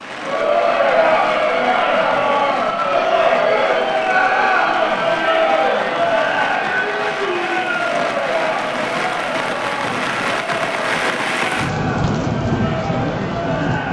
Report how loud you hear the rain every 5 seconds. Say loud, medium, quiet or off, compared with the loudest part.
medium, medium, loud.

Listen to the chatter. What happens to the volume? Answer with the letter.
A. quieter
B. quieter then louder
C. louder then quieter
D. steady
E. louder
A.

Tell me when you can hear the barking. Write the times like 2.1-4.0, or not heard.
not heard.